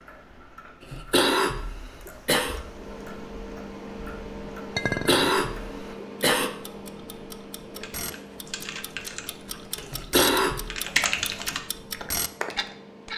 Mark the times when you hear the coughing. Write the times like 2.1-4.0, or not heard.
0.8-2.6, 4.8-6.5, 9.8-10.8.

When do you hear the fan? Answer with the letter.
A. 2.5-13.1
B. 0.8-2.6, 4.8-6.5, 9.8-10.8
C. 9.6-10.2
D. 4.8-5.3
A.